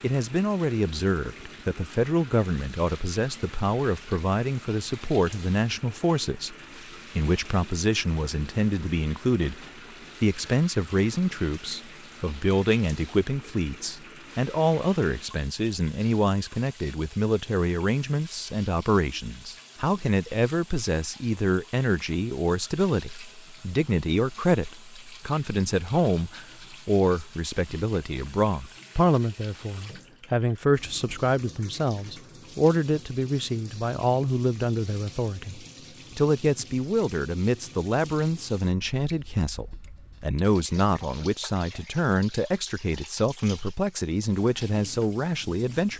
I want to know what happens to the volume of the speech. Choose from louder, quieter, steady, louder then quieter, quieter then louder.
steady.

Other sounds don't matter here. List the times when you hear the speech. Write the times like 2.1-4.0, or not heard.
0.0-6.5, 7.2-45.9.